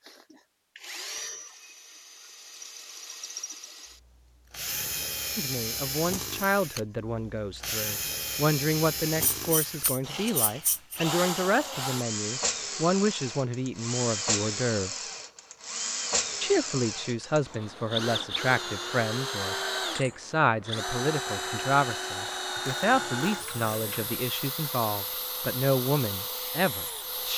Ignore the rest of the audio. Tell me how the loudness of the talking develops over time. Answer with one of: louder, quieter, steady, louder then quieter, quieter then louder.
steady.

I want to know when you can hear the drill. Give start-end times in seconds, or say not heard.
0.0-27.3.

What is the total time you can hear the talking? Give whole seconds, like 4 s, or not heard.
21 s.